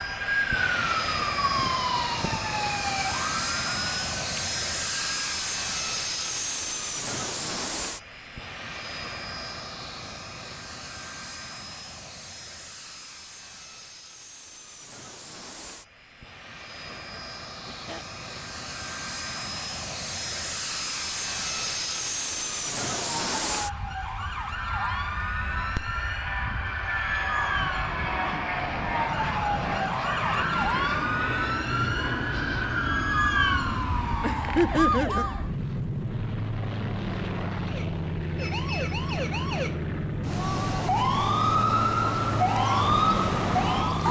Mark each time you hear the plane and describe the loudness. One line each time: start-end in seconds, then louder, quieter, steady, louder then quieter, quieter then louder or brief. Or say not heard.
0.0-44.0 quieter then louder.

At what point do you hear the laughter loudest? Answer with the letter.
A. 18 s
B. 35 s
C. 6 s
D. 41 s
B.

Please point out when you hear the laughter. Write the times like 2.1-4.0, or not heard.
16.9-18.1, 34.2-35.2.